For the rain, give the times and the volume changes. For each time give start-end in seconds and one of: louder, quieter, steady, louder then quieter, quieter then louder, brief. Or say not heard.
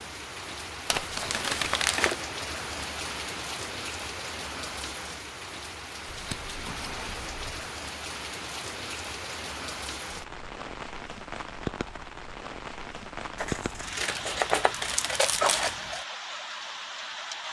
0.0-17.4 steady.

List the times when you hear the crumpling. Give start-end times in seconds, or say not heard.
0.8-2.1, 13.9-15.8.